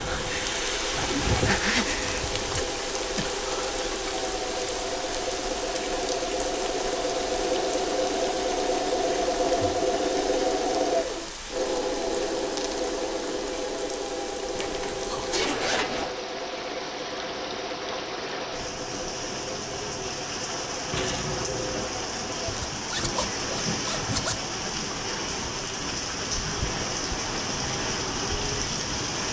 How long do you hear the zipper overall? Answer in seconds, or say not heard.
5 s.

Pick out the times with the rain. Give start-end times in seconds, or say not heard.
0.0-29.2.